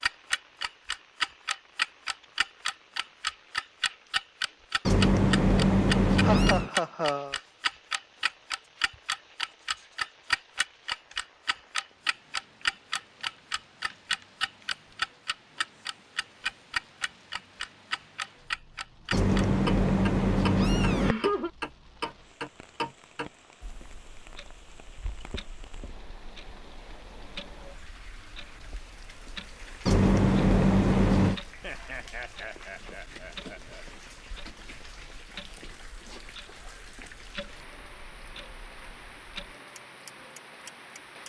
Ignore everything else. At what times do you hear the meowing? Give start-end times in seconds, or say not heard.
4.8-6.7, 19.1-21.1, 29.9-31.4.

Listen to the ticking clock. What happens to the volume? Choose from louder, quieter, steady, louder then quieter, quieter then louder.
quieter.